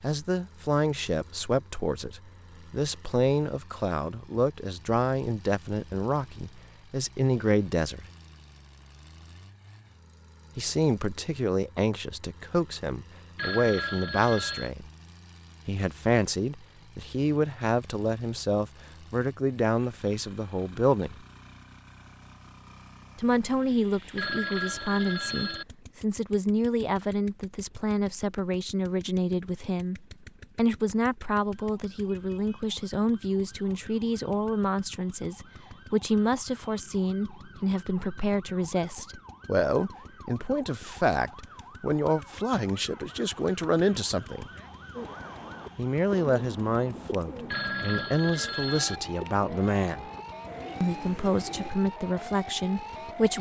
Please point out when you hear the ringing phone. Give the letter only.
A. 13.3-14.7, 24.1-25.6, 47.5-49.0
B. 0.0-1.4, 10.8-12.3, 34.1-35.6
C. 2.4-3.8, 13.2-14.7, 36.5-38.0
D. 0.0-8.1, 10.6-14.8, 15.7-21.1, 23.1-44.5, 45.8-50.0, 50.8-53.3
A.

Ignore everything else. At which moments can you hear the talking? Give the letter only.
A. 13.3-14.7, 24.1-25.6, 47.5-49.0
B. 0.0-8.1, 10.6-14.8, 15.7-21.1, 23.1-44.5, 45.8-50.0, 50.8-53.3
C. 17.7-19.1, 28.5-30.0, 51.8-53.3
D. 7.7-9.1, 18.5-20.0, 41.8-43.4
B.